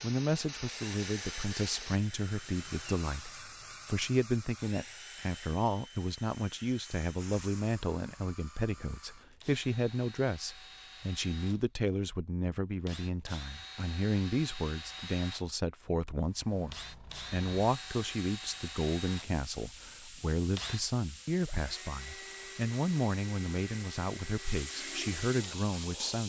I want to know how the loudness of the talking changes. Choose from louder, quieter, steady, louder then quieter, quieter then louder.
steady.